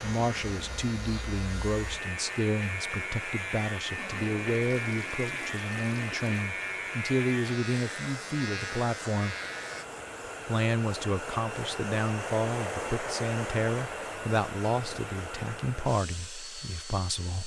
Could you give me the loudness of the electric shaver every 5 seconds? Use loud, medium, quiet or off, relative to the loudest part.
loud, loud, off, off.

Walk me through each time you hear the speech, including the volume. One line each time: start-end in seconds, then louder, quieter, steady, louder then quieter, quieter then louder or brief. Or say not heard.
0.0-9.3 steady
10.4-17.4 steady.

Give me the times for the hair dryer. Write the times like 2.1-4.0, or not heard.
0.2-17.4.